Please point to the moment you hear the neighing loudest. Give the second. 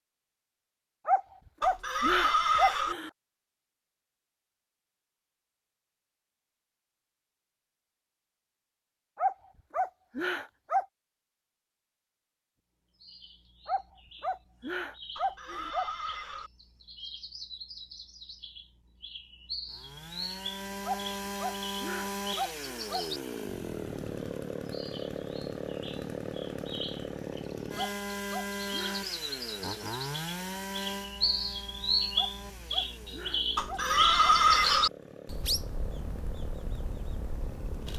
34 s.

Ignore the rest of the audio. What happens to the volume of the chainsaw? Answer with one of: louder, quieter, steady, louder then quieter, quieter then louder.
quieter.